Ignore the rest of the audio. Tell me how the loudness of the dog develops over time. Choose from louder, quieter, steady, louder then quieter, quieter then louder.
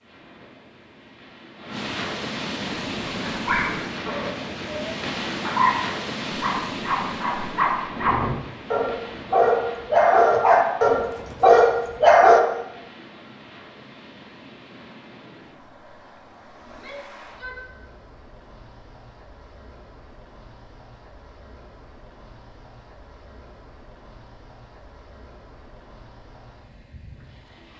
louder.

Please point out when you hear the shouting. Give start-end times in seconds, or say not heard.
16.6-17.6.